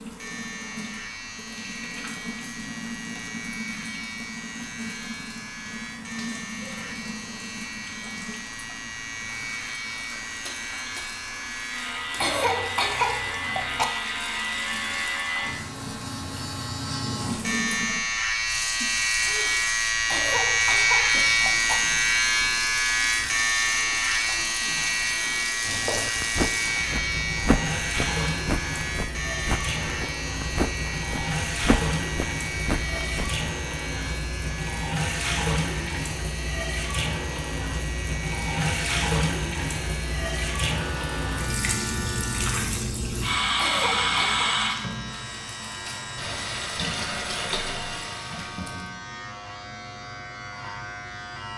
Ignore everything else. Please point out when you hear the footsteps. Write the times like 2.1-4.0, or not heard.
25.6-33.5.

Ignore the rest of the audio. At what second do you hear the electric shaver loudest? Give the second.
21 s.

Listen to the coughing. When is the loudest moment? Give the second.
13 s.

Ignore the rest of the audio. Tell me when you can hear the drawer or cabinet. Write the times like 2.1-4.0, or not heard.
not heard.